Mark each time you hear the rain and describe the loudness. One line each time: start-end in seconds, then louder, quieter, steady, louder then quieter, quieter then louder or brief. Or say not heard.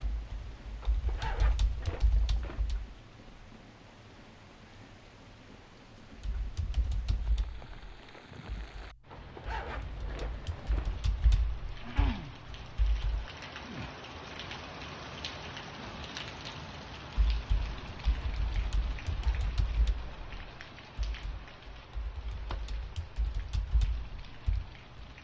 0.0-25.2 louder then quieter.